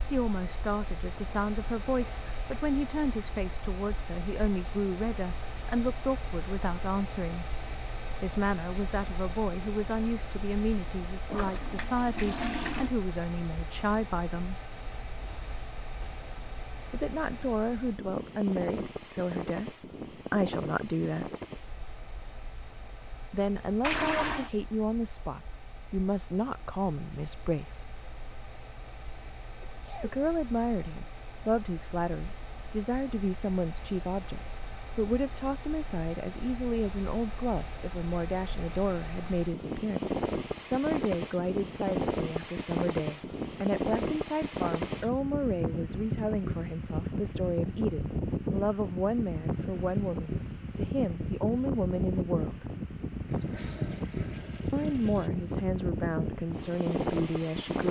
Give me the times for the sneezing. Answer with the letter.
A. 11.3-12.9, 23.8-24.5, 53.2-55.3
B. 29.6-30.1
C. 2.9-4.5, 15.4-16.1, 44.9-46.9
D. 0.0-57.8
B.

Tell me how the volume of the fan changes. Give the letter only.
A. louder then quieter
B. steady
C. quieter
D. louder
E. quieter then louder
E.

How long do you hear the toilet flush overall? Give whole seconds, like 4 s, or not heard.
4 s.